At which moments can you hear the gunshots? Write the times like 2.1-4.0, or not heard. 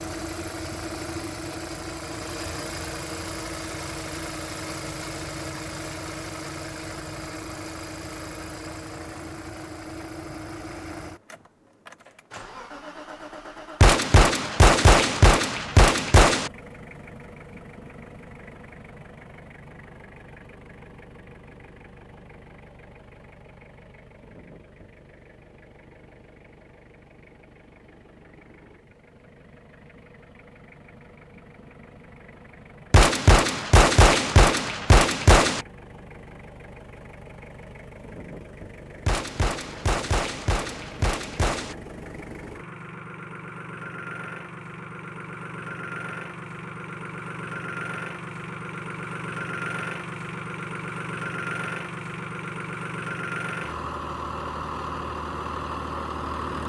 13.8-16.5, 32.9-35.6, 39.0-41.8.